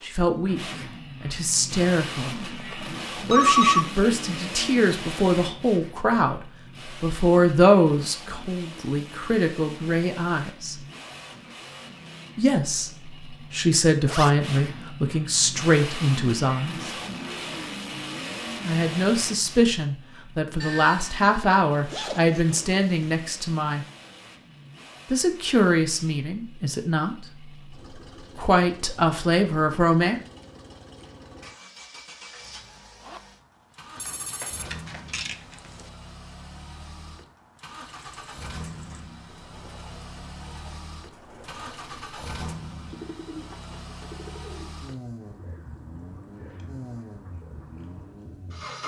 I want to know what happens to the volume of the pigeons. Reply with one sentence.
The loudness of the pigeons goes up, then down.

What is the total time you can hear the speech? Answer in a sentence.
You can hear the speech for 24 seconds altogether.